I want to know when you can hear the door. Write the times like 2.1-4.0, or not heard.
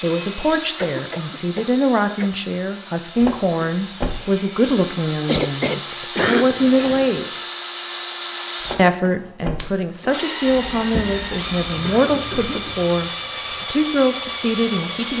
3.1-4.2, 8.6-10.2.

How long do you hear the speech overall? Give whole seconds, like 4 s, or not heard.
13 s.